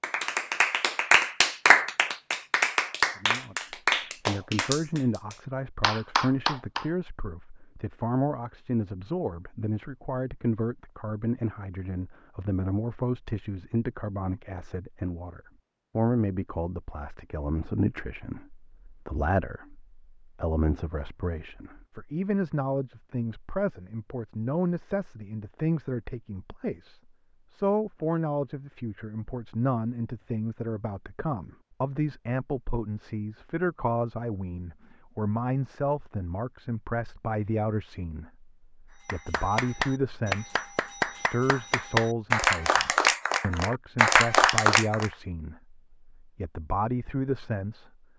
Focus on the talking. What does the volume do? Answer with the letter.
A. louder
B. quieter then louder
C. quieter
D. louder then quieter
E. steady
E.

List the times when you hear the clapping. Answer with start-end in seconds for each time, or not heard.
0.0-6.8, 39.0-45.1.